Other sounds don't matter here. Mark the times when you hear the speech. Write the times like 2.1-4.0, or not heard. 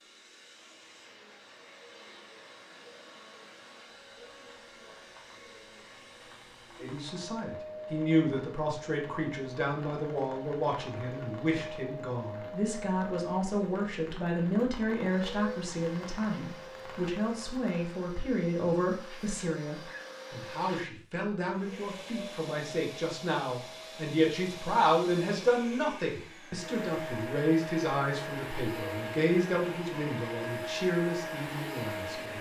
6.8-32.3.